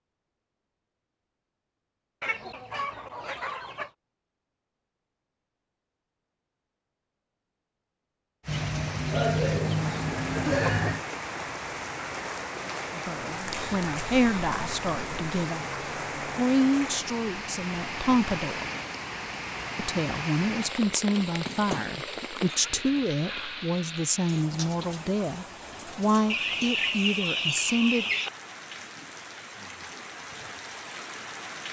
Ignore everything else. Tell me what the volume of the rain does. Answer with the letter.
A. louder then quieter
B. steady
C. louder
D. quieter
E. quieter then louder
D.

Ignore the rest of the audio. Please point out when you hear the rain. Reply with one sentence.
You can hear the rain from 8.4 to 31.6 s.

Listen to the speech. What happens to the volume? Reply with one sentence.
The volume of the speech stays about the same.